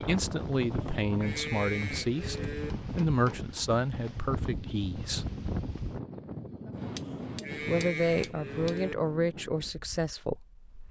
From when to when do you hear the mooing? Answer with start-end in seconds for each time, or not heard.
0.7-2.7, 6.9-8.9.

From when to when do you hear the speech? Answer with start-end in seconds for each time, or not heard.
0.0-5.2, 7.7-10.8.